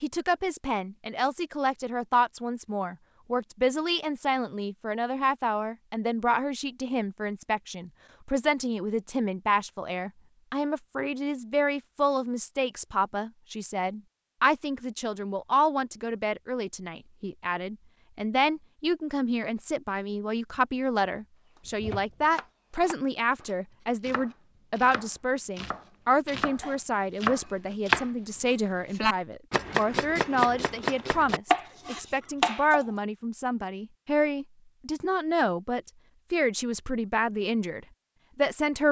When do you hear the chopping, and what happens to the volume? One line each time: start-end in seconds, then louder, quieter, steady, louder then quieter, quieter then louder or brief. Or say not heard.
21.6-32.9 louder.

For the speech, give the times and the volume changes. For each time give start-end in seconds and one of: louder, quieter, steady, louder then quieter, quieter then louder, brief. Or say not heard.
0.0-38.8 steady.